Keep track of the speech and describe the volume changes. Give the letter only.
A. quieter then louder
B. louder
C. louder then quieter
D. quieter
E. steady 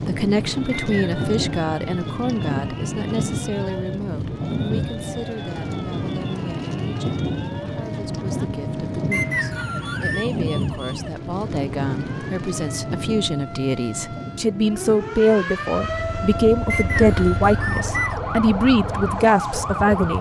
A.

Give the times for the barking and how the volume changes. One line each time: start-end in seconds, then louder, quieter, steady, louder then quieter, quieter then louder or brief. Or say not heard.
not heard.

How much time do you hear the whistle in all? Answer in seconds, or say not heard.
3 s.